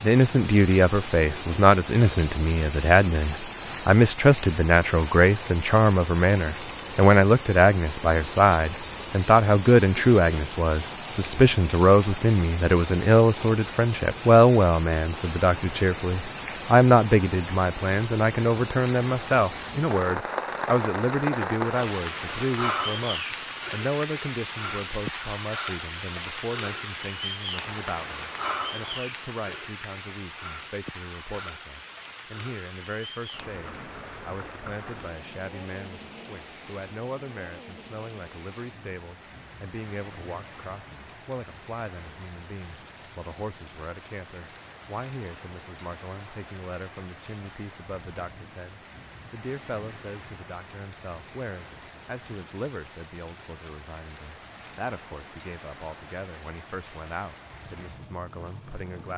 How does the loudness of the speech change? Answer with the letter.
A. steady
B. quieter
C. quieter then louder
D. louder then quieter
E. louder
B.